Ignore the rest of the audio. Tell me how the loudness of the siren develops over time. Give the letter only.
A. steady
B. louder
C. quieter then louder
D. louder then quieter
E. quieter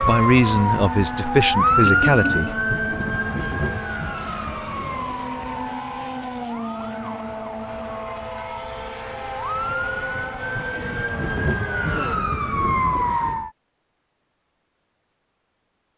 C.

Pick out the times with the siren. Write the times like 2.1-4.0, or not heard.
0.0-13.5.